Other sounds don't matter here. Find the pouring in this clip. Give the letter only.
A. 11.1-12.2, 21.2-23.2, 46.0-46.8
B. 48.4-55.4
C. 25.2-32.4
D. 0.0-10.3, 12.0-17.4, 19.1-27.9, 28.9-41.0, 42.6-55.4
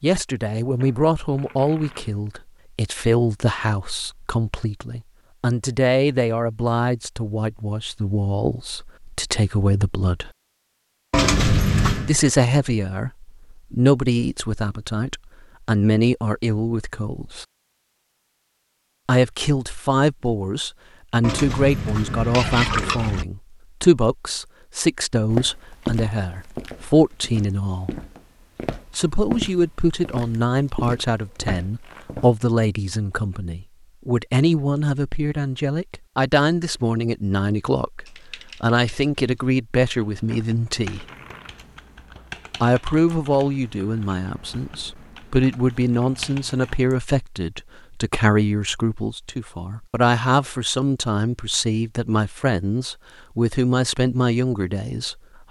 A.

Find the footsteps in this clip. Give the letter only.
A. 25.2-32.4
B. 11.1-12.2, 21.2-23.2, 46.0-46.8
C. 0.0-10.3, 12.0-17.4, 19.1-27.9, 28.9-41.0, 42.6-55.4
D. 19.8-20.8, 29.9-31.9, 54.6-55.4
A.